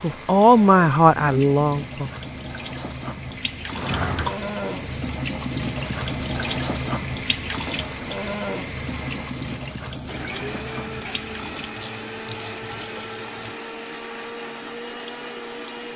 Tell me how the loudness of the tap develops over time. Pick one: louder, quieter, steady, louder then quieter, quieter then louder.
louder then quieter.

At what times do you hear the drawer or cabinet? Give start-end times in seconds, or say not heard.
3.7-4.4.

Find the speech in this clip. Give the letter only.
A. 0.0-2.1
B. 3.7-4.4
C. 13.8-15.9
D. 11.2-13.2
A.